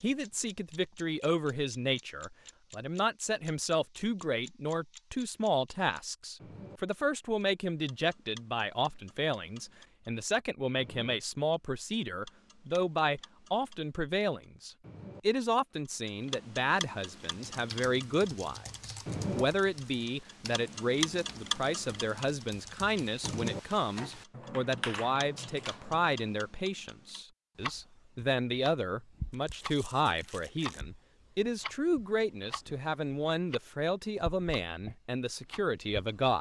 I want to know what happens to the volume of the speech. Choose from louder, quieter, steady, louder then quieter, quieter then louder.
steady.